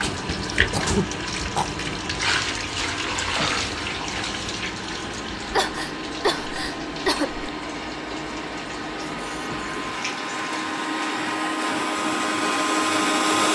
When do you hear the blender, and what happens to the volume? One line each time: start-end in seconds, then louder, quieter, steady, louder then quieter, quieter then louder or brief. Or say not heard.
0.0-13.4 louder.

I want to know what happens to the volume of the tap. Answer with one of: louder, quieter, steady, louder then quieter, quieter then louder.
quieter.